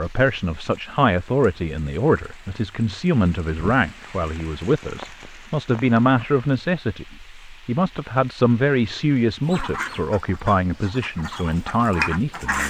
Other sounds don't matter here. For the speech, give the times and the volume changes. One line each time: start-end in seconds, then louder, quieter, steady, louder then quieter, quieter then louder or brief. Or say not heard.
0.0-12.6 steady.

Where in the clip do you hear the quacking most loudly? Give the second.
12 s.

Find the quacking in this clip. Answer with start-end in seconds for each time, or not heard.
9.4-12.6.